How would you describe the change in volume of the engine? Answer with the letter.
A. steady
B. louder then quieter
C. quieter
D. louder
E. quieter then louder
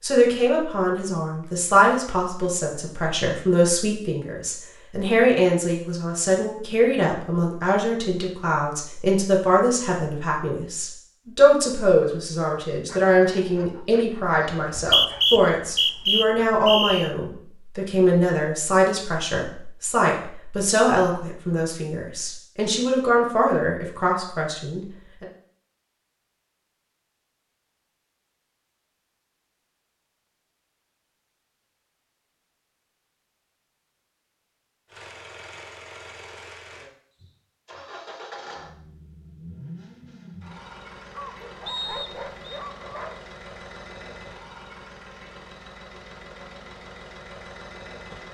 A.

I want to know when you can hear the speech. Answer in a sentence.
The speech can be heard from 0.0 to 25.2 s.